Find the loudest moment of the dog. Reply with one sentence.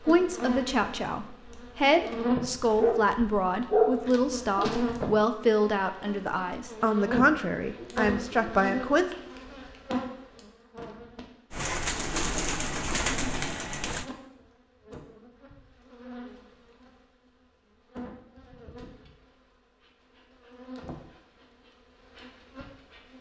The volume of the dog peaks at 4 seconds.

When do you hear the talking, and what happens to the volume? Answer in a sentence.
You can hear the talking from 0.0 to 9.2 s, at a steady volume.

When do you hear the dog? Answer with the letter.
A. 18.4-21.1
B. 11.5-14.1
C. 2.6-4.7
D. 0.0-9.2
C.